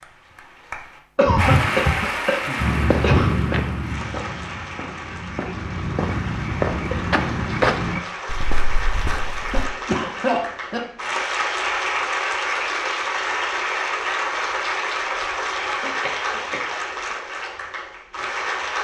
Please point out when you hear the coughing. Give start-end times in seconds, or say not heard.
1.1-3.4, 9.5-10.8, 15.6-17.1.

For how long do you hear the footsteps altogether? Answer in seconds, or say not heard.
7 s.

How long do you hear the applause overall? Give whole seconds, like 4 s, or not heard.
19 s.